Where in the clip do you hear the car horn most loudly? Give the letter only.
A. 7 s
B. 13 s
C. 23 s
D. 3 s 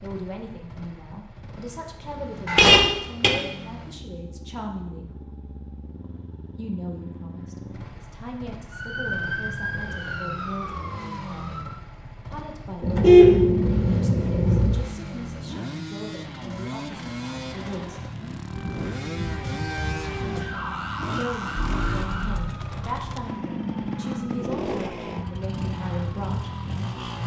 B.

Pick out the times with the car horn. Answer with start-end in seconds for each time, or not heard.
2.5-3.3, 12.8-14.8, 21.6-22.4.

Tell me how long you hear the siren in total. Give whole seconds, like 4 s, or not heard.
12 s.